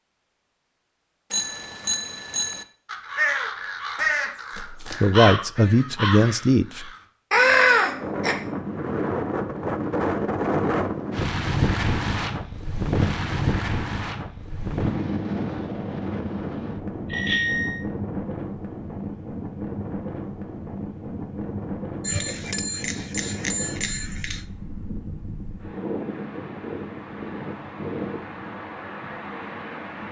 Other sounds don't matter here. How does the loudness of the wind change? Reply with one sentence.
The volume of the wind goes down.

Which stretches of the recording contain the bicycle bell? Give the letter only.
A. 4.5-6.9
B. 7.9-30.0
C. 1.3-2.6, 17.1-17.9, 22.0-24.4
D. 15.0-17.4
C.